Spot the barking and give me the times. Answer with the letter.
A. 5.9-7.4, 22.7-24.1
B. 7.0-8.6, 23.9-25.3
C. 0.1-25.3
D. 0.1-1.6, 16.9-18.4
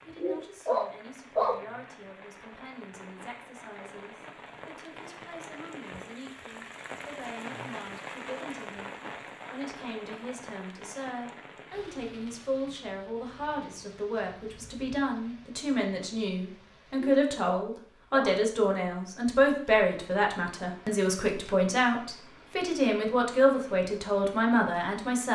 D.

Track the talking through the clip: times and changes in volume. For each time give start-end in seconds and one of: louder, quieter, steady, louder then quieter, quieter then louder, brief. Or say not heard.
0.1-25.3 louder.